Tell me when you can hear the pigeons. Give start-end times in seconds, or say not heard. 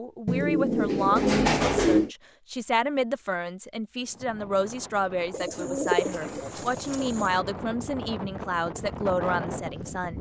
0.2-2.1, 5.3-7.3.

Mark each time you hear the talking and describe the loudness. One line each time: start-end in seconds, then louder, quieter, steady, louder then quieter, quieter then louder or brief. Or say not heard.
0.0-10.1 steady.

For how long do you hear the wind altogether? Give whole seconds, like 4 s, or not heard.
6 s.